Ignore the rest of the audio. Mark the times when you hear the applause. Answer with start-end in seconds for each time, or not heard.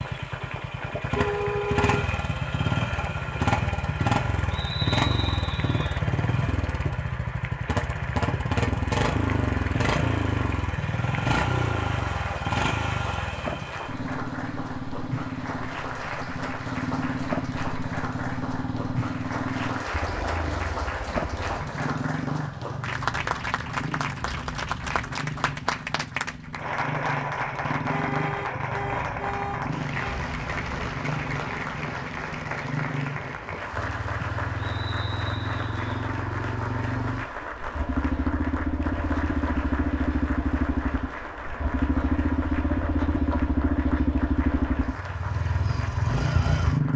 0.0-46.9.